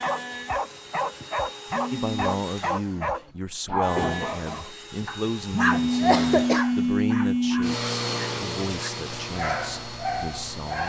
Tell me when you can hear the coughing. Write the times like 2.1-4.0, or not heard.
5.7-6.7.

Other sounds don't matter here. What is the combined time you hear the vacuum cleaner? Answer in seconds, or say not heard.
11 s.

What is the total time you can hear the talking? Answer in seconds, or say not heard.
9 s.